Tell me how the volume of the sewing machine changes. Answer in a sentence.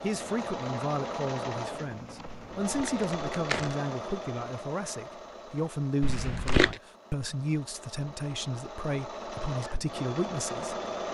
The loudness of the sewing machine goes down, then up.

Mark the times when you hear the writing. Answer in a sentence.
The writing can't be heard in this clip.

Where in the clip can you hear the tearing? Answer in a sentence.
You can hear the tearing from 2.2 to 3.8 s and from 6.0 to 6.8 s.